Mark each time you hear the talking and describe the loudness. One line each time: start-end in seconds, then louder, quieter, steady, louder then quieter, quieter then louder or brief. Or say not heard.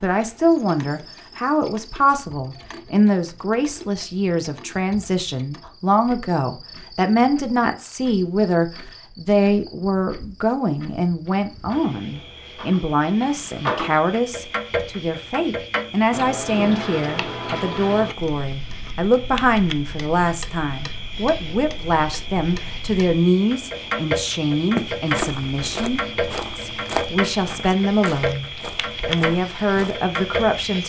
0.0-30.8 steady.